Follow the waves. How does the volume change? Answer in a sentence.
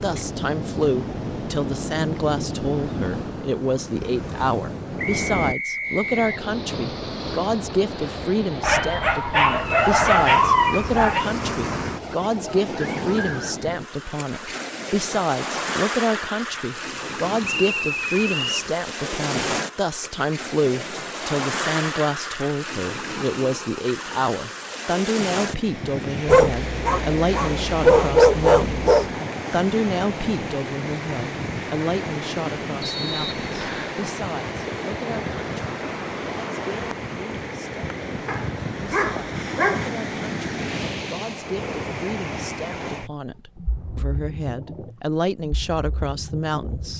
The loudness of the waves stays about the same.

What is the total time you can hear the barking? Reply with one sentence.
You can hear the barking for 7 seconds altogether.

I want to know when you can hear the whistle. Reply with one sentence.
The whistle can be heard from 5.0 to 6.3 s, from 17.4 to 18.7 s and from 32.8 to 33.9 s.